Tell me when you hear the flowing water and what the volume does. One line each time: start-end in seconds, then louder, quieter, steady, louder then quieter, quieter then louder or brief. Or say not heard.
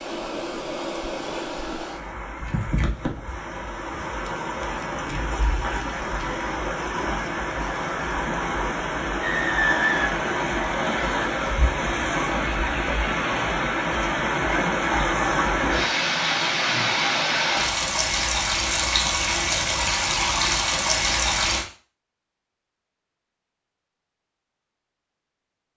0.0-21.6 louder.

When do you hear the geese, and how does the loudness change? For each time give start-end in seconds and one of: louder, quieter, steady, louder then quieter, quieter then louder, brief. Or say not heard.
not heard.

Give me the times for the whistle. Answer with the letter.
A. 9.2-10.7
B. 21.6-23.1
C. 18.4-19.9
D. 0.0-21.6
A.